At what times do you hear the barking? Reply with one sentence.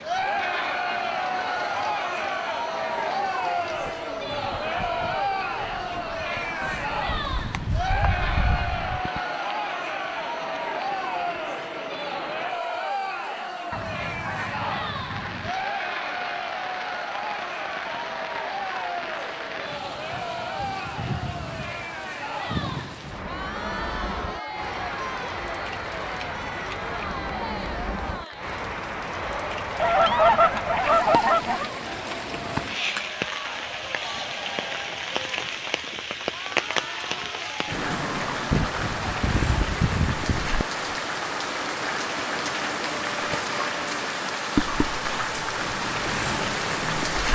You can't hear the barking here.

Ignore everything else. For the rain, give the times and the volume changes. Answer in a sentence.
You can hear the rain from 0.0 to 47.2 s, getting louder.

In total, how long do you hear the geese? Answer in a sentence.
The geese can be heard for 8 seconds in total.